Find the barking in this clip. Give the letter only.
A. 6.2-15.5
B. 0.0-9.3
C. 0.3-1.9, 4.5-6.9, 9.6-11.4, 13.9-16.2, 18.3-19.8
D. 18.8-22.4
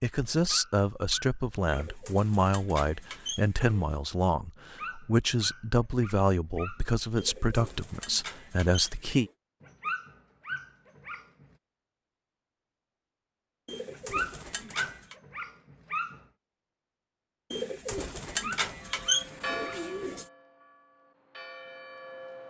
C.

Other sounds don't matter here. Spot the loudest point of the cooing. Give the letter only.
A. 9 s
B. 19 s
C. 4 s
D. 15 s
B.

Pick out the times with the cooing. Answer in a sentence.
You can hear the cooing from 1.6 to 4.0 s, from 7.2 to 9.3 s, from 13.7 to 15.2 s and from 17.5 to 20.3 s.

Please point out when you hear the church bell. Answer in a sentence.
The church bell can be heard from 18.8 to 22.4 s.